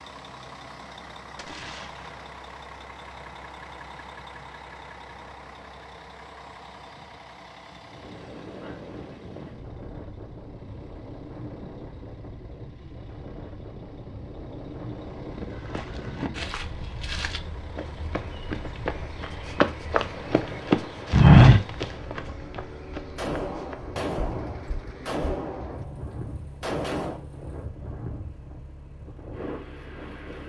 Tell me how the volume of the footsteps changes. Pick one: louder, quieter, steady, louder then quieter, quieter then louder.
louder then quieter.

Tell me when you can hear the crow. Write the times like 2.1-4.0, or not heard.
not heard.